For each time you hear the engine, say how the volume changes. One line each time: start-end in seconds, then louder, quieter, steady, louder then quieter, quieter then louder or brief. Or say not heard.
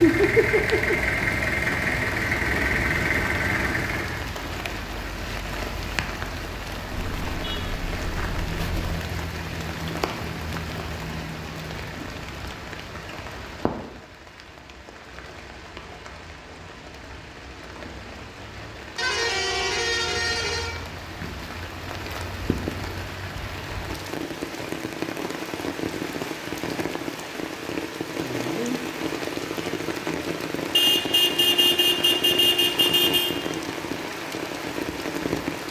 0.0-4.2 steady.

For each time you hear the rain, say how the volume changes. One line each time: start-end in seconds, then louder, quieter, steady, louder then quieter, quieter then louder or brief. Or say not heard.
0.0-35.6 quieter then louder.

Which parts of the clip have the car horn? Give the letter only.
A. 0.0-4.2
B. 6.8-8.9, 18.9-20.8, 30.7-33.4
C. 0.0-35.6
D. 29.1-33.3
B.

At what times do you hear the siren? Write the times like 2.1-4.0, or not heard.
not heard.